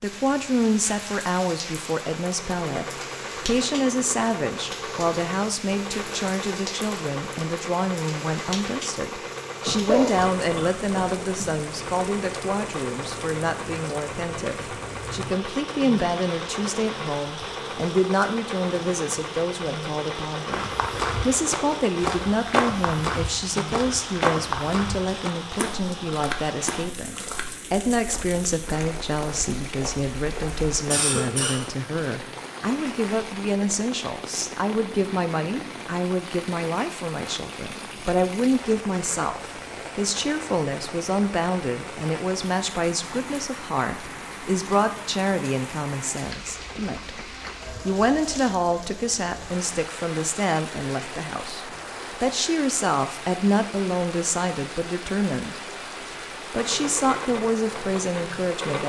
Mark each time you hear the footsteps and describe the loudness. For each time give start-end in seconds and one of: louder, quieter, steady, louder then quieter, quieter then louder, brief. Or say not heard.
20.5-30.8 quieter.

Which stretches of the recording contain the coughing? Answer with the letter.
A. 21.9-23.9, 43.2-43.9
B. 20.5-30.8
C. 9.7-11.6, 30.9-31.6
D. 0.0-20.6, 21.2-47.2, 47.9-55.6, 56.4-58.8
C.